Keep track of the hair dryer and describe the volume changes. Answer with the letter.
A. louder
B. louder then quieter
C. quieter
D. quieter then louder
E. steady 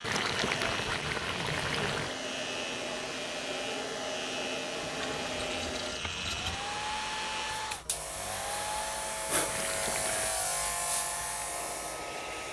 C.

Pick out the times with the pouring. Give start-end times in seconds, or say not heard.
0.0-2.2, 4.8-6.5, 9.4-10.3.